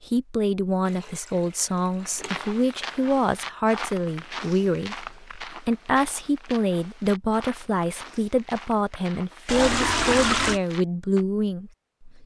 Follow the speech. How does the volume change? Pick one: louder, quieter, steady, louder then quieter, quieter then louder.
steady.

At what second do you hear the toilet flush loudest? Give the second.
10 s.